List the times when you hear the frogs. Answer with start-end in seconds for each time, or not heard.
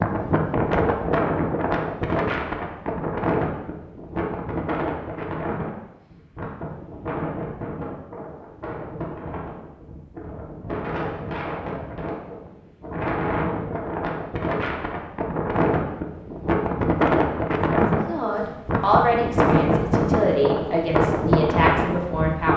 not heard.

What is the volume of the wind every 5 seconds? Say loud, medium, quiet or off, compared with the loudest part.
loud, medium, medium, loud, loud.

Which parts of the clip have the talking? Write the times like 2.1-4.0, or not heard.
17.9-22.5.